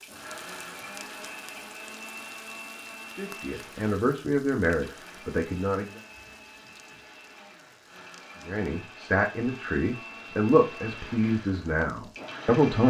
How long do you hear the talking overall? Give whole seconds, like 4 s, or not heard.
7 s.